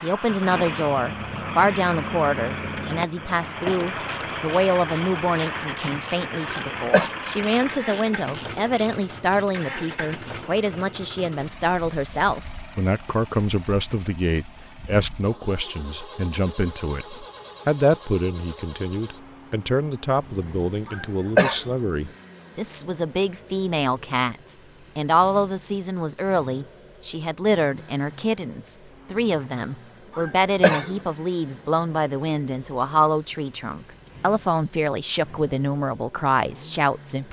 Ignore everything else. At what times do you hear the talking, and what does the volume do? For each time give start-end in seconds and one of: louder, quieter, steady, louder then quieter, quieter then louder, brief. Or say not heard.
0.0-37.2 steady.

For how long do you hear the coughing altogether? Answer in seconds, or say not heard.
2 s.